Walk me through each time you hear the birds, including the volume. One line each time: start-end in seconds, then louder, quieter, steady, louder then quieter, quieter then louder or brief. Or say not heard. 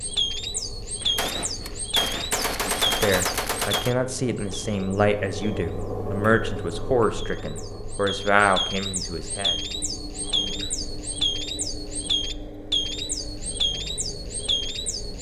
0.0-15.1 quieter then louder.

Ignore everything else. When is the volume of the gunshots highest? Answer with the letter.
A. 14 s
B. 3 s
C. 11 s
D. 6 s
B.